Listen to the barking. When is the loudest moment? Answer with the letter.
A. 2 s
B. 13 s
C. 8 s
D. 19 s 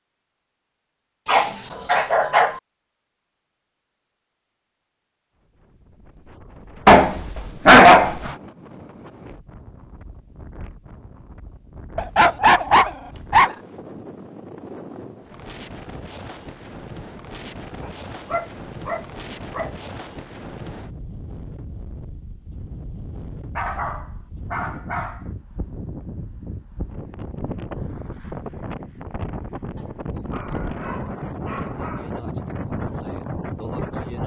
C.